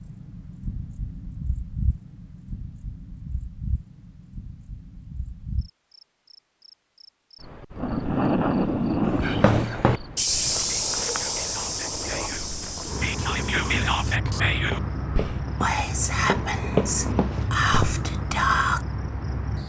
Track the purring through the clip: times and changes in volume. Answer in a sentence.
The purring can't be heard in this clip.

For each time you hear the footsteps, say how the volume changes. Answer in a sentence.
The footsteps can be heard from 9.1 to 17.9 s, getting quieter then louder.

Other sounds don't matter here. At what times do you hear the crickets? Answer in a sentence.
You can hear the crickets from 0.0 to 19.6 s.